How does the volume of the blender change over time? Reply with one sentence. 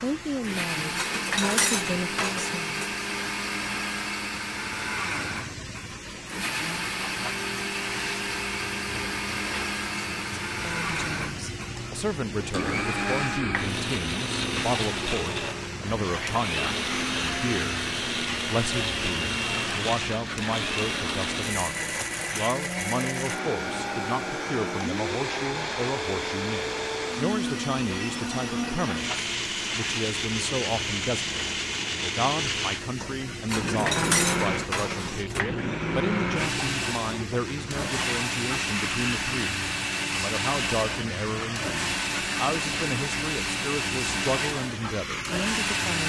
The volume of the blender stays about the same.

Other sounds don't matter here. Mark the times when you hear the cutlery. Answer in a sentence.
The cutlery can be heard from 0.9 to 2.9 s and from 33.5 to 35.4 s.